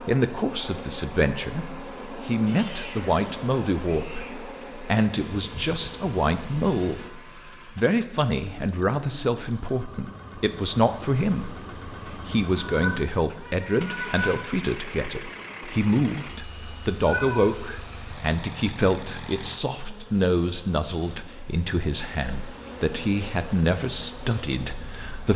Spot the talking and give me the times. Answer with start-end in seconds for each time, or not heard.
0.0-25.3.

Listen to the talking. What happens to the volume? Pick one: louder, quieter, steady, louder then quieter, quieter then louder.
steady.